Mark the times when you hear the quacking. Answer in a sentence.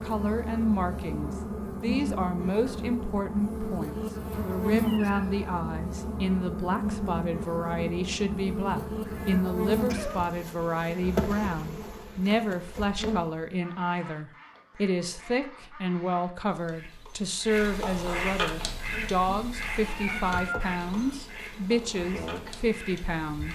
You can hear the quacking from 13.5 to 23.5 s.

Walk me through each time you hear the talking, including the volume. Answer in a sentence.
You can hear the talking from 0.0 to 23.5 s, at a steady volume.